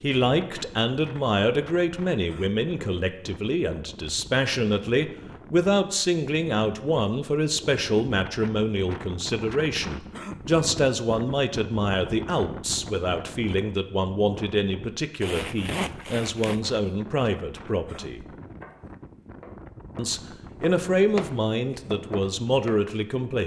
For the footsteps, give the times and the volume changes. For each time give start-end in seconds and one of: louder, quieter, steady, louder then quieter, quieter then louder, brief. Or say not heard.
not heard.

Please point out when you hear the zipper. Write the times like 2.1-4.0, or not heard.
15.2-16.6.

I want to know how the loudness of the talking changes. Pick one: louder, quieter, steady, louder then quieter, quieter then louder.
steady.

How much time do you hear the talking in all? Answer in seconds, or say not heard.
22 s.